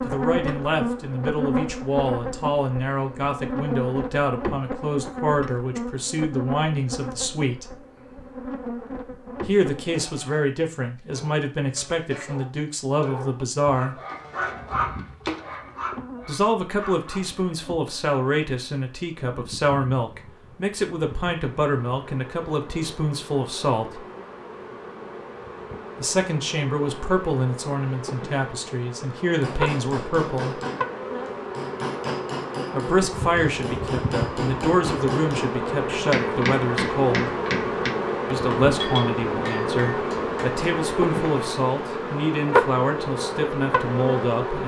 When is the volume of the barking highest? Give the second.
15 s.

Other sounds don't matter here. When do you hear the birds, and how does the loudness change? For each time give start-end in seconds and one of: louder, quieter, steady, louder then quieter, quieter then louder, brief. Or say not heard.
not heard.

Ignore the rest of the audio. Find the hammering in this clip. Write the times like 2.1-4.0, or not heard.
29.3-40.7.